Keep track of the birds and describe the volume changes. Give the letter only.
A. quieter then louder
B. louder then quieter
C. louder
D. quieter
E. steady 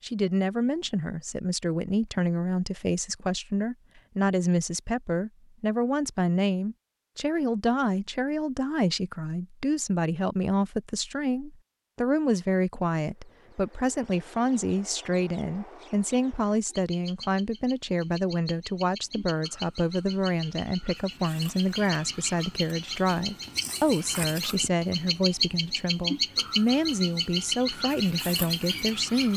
C.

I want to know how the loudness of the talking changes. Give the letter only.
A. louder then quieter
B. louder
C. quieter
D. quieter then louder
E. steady
E.